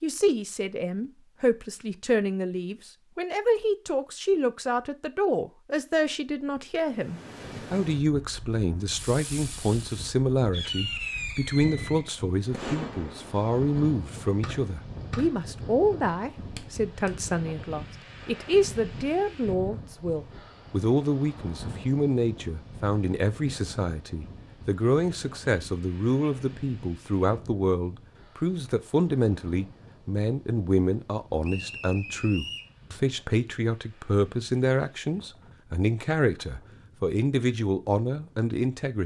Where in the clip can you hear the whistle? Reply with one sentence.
The whistle can be heard from 31.4 to 32.7 s.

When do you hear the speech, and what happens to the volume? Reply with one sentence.
The speech can be heard from 0.0 to 39.0 s, at a steady volume.